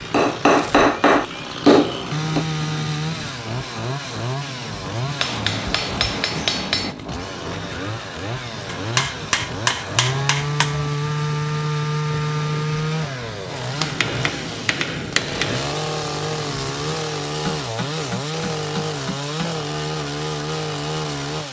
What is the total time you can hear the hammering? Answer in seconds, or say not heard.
10 s.